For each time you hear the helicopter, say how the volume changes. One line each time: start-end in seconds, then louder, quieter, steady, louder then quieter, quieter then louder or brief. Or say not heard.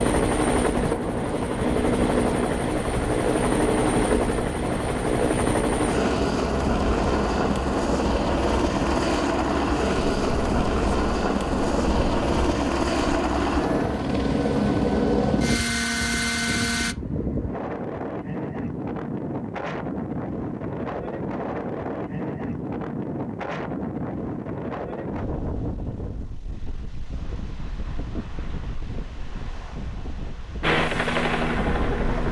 0.0-16.9 steady
30.6-32.2 brief.